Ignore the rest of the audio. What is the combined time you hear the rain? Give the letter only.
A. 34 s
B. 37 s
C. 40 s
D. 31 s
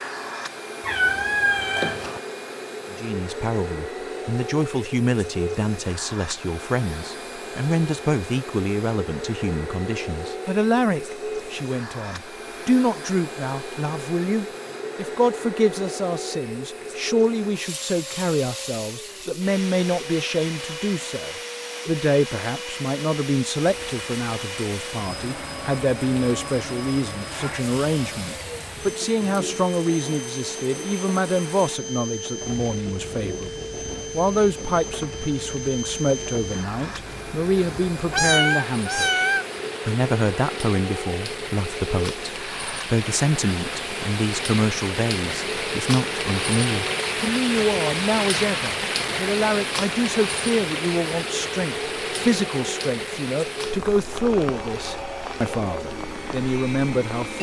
A.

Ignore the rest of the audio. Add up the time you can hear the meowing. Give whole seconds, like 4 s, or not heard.
3 s.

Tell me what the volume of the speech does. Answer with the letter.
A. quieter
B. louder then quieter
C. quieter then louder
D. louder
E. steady
E.